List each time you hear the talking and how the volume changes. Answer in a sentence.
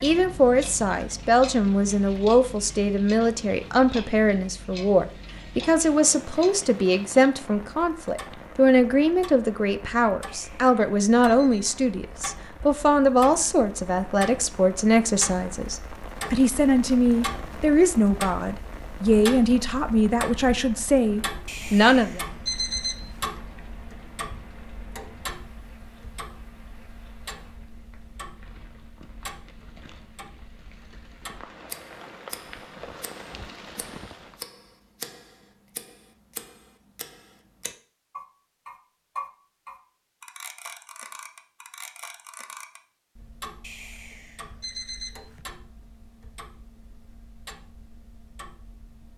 You can hear the talking from 0.0 to 22.2 s, at a steady volume.